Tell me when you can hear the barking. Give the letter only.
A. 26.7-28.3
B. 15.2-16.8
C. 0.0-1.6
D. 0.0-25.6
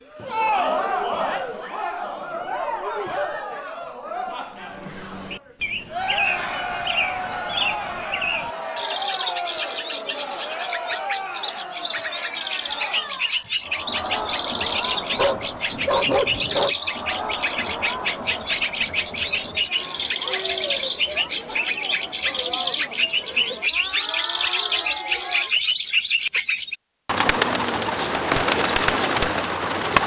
B.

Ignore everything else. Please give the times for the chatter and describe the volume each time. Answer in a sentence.
You can hear the chatter from 0.0 to 25.6 s, getting quieter.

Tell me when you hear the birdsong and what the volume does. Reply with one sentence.
You can hear the birdsong from 4.6 to 30.0 s, getting louder.